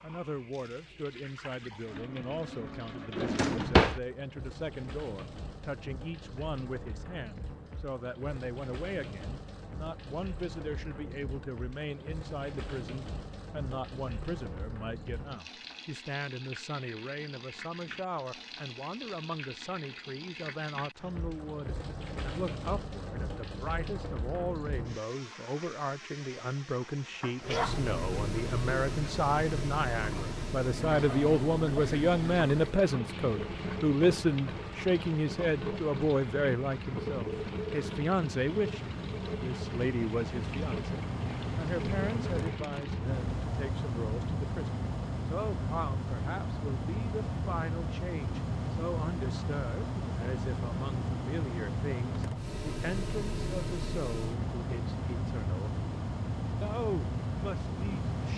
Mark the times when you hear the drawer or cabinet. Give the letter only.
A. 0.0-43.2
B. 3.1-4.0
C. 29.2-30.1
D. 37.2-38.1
B.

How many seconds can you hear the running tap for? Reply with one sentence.
You can hear the running tap for 43 seconds altogether.